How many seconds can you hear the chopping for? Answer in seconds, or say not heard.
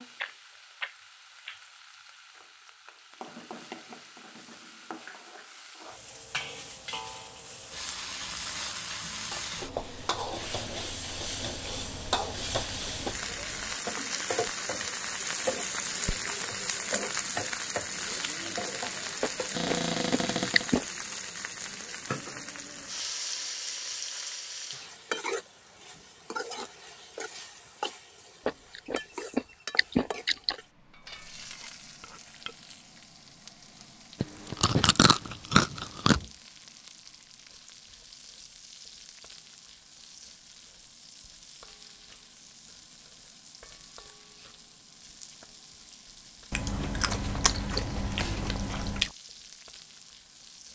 not heard.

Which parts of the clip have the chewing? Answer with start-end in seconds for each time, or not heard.
0.2-1.6, 11.6-13.8, 19.2-20.9, 28.4-30.6, 34.2-36.2, 46.5-49.1.